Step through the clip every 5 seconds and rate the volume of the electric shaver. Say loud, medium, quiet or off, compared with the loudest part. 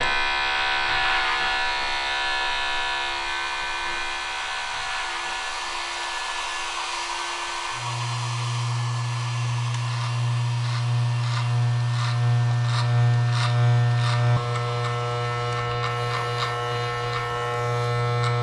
loud, medium, loud, loud.